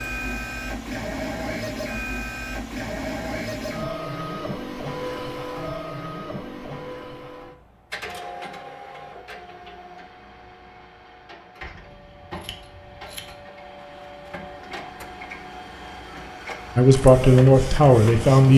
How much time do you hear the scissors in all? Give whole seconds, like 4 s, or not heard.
2 s.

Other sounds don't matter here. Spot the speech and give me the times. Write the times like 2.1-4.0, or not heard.
16.8-18.5.